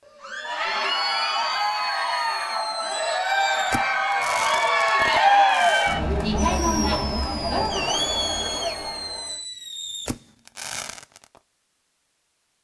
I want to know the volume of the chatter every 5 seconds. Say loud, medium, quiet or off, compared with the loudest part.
loud, loud, off.